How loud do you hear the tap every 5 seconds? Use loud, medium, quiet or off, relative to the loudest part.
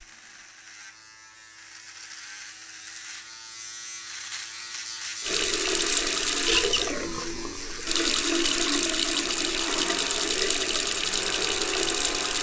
off, loud, loud.